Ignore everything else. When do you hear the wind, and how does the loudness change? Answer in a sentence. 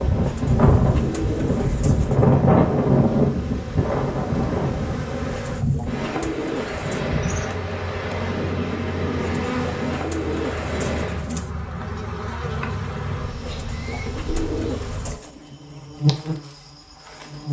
You can hear the wind from 0.0 to 11.3 s, getting quieter.